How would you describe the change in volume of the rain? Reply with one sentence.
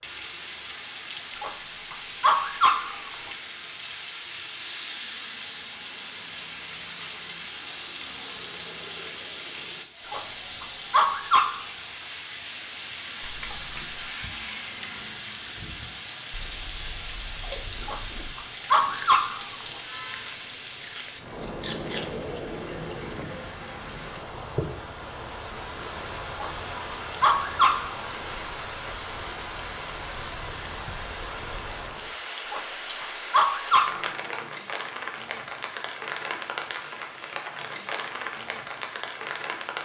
The loudness of the rain stays about the same.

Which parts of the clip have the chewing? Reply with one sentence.
The chewing can be heard from 13.2 to 22.6 s.